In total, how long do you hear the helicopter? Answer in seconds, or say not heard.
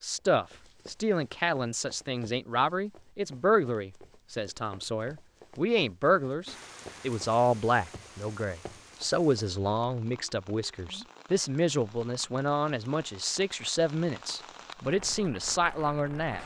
not heard.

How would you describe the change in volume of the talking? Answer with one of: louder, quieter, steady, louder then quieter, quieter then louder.
steady.